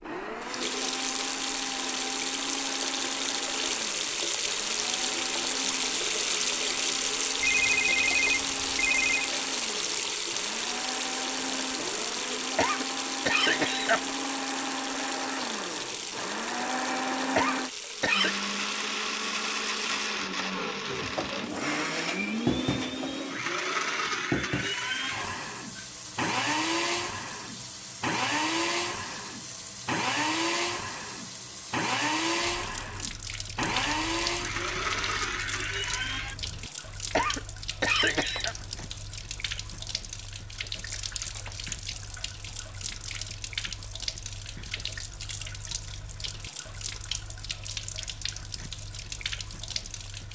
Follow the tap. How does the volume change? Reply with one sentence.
The loudness of the tap goes down.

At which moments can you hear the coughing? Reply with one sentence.
You can hear the coughing from 12.6 to 14.1 s, from 17.4 to 18.4 s and from 37.1 to 38.5 s.